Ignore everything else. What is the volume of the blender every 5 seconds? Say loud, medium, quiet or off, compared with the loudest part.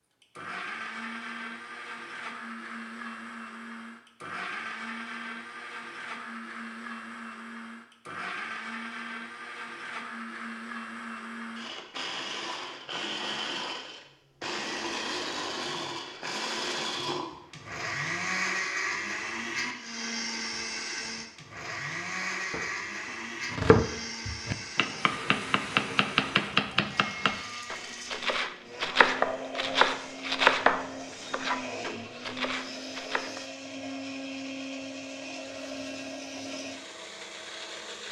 medium, medium, loud, loud, loud, medium, medium, medium.